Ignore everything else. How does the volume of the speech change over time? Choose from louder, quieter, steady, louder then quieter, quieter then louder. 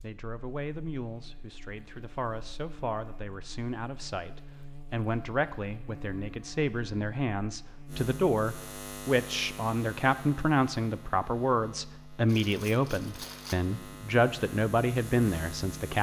louder.